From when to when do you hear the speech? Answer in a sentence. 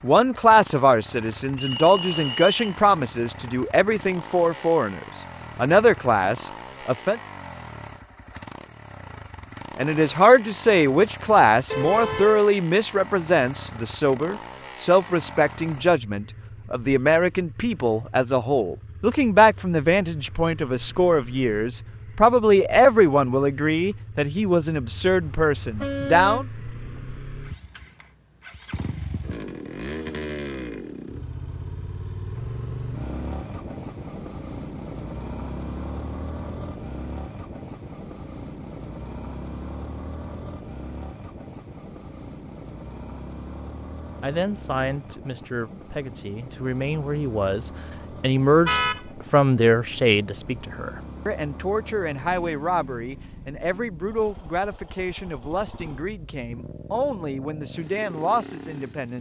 The speech can be heard from 0.0 to 7.2 s, from 9.8 to 26.4 s and from 44.2 to 59.1 s.